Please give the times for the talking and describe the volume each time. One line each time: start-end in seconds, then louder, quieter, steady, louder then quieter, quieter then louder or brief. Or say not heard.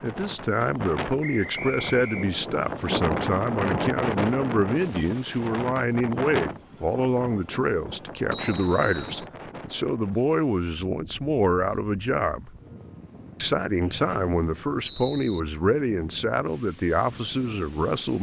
0.0-12.5 steady
13.4-18.1 steady.